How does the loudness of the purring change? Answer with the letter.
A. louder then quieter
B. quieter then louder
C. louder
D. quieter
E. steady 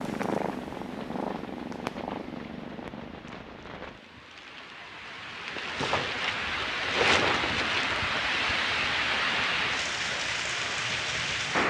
D.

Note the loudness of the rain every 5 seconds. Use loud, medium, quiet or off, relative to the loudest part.
quiet, loud, loud.